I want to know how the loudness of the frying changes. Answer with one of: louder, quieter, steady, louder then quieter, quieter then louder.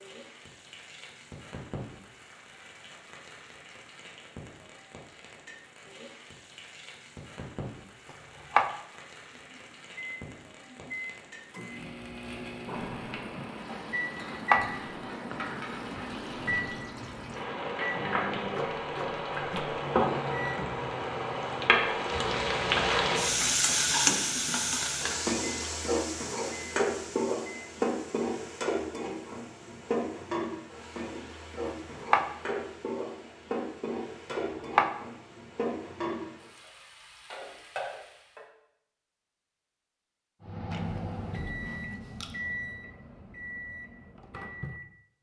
louder then quieter.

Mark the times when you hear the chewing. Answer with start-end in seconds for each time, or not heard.
40.7-42.4.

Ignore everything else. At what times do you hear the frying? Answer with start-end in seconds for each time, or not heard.
0.0-38.5.